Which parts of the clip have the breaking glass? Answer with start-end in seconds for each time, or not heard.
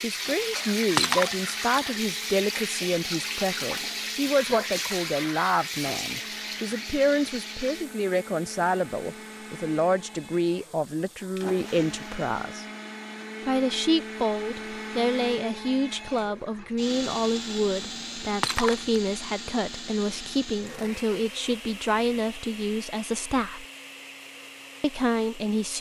0.9-1.5, 18.4-18.9.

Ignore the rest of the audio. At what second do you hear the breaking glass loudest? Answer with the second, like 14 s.
1 s.